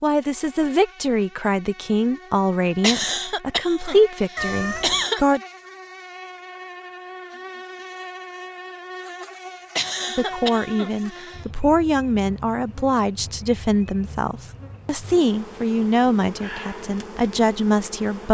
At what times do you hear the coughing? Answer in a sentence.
The coughing can be heard from 2.8 to 5.4 s and from 9.8 to 11.4 s.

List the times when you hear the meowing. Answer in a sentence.
You can hear the meowing from 4.3 to 5.0 s.